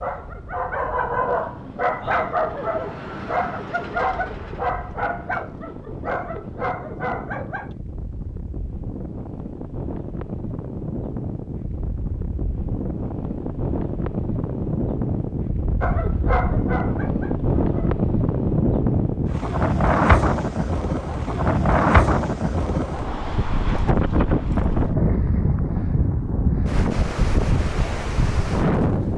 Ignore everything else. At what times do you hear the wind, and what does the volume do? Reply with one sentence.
The wind can be heard from 0.0 to 29.1 s, getting louder.